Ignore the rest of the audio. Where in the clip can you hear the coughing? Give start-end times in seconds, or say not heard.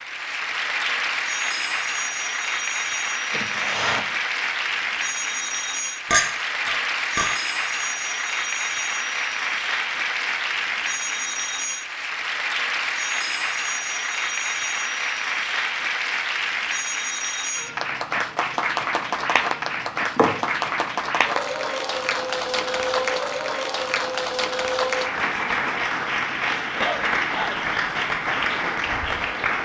3.3-4.0, 26.8-27.6.